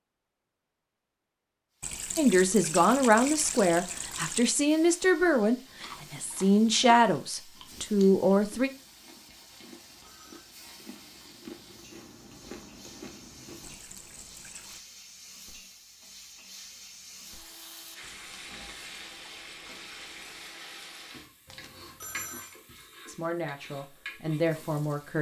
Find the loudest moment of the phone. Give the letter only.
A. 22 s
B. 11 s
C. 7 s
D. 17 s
A.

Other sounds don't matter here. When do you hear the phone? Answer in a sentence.
The phone can be heard from 9.5 to 10.6 s and from 21.4 to 22.6 s.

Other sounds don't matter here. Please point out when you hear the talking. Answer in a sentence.
The talking can be heard from 2.1 to 8.7 s and from 23.1 to 25.1 s.